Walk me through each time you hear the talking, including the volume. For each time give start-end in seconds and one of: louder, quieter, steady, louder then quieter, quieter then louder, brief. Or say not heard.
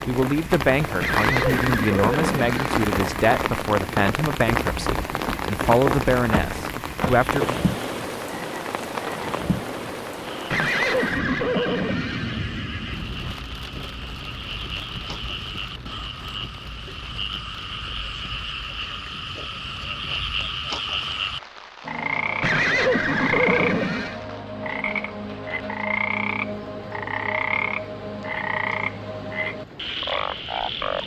0.1-7.6 steady.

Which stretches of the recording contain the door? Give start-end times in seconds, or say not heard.
6.3-7.3.